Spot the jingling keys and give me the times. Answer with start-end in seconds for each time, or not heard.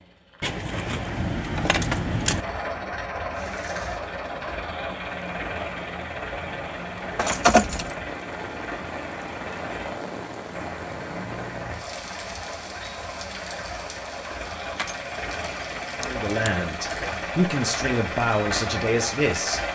0.4-2.5, 7.2-8.0, 14.8-17.1.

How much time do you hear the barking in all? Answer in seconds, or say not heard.
not heard.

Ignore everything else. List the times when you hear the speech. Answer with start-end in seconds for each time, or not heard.
16.0-19.6.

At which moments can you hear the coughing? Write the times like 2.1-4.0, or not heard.
not heard.